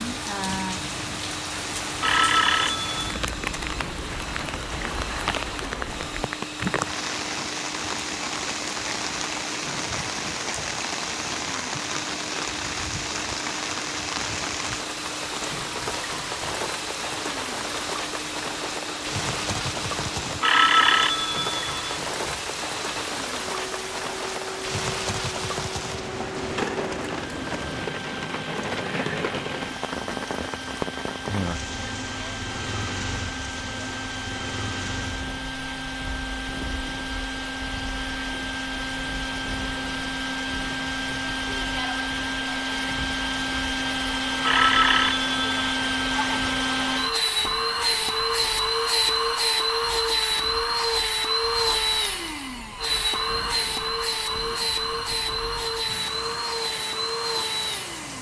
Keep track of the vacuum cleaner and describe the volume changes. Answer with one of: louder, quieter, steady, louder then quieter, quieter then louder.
louder.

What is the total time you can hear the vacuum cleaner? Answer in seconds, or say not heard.
58 s.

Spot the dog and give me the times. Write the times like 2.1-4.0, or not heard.
not heard.